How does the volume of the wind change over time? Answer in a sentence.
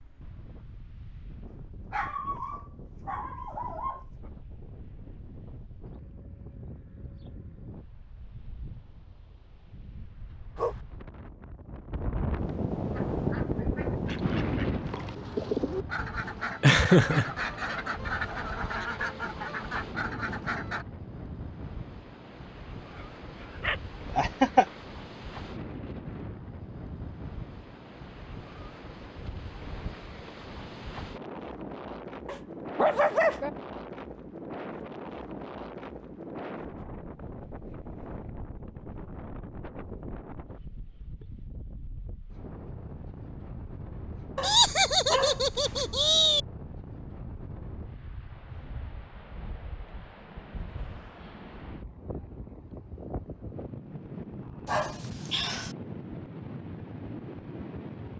The volume of the wind goes up, then down.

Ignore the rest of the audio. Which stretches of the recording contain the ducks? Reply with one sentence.
The ducks can be heard from 12.9 to 20.9 s.